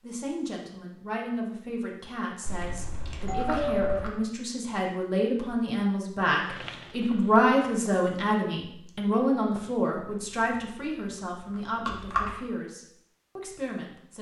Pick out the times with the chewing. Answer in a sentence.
The chewing can be heard from 2.5 to 4.1 s and from 9.9 to 12.3 s.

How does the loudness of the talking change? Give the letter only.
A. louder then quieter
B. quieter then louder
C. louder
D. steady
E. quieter
A.